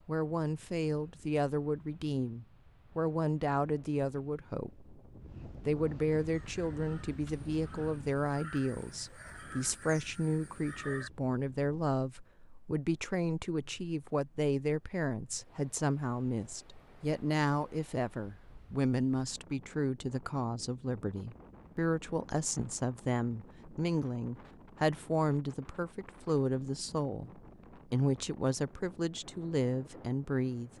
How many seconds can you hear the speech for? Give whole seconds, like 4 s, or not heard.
30 s.